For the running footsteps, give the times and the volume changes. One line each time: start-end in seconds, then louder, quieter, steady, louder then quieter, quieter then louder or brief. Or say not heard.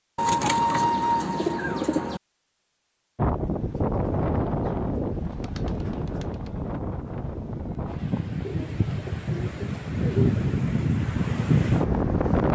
not heard.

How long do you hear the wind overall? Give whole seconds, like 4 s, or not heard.
9 s.